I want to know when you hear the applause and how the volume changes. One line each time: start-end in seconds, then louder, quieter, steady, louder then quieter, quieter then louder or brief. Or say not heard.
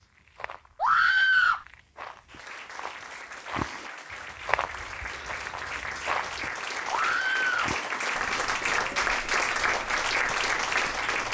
2.2-11.2 louder.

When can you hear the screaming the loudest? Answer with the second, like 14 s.
1 s.